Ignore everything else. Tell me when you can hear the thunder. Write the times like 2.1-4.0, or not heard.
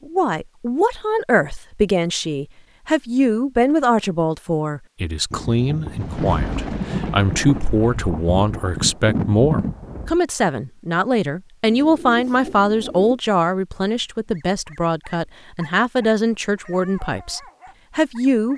5.3-10.2.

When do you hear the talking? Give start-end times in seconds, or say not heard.
0.1-18.5.